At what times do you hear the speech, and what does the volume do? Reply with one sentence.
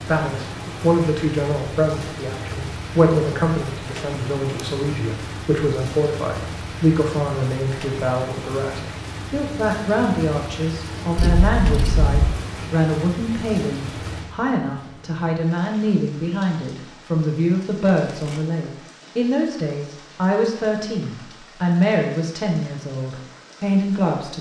You can hear the speech from 0.0 to 24.3 s, at a steady volume.